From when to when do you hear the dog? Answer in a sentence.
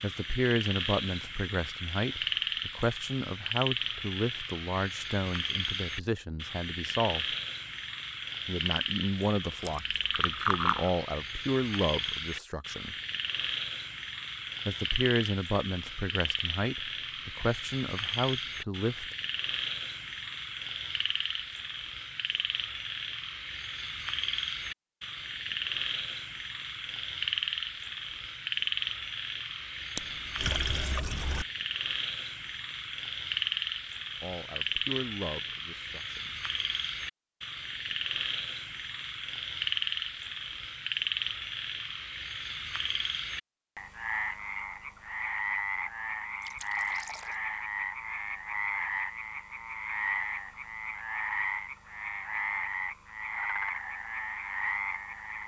You can't hear the dog here.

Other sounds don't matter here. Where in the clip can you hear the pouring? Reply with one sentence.
You can hear the pouring from 9.6 to 10.9 s, from 29.9 to 31.4 s and from 46.4 to 47.4 s.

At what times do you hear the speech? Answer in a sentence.
You can hear the speech from 0.0 to 7.3 s, from 8.4 to 12.9 s, from 14.7 to 19.1 s and from 34.2 to 36.4 s.